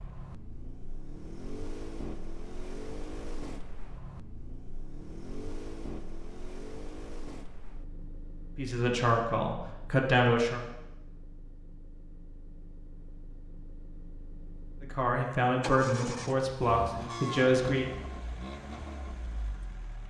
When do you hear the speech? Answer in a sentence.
You can hear the speech from 8.6 to 10.6 s and from 14.8 to 17.9 s.